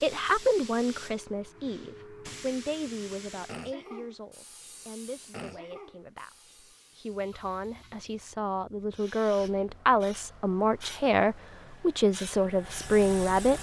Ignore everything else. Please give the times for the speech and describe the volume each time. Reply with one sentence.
You can hear the speech from 0.0 to 13.5 s, getting quieter then louder.